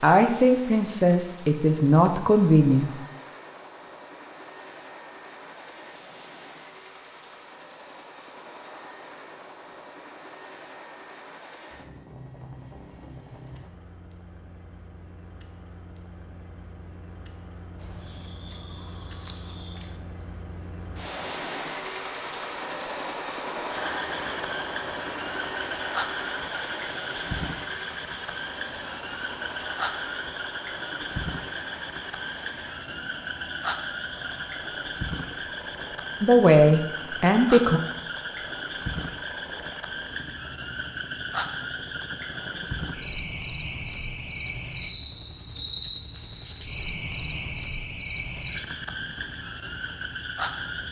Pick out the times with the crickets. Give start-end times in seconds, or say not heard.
17.8-50.8.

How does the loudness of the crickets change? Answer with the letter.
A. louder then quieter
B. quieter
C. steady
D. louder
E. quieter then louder
C.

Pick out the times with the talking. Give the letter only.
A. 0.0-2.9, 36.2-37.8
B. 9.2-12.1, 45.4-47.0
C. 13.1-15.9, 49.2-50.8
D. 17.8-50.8
A.